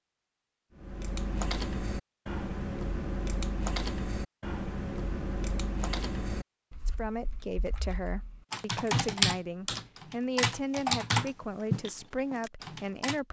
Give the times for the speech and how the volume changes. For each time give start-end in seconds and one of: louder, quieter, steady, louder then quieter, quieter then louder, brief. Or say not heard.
6.8-13.2 steady.